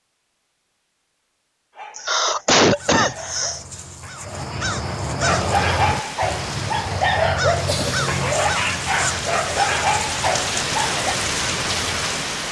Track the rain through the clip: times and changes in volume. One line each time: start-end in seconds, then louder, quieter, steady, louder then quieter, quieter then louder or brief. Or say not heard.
5.2-12.4 louder.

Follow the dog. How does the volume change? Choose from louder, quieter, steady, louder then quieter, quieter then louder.
louder.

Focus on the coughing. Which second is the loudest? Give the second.
3 s.